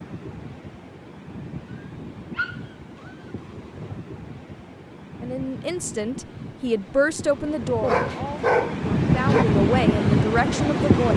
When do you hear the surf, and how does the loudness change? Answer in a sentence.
The surf can be heard from 0.0 to 11.1 s, getting louder.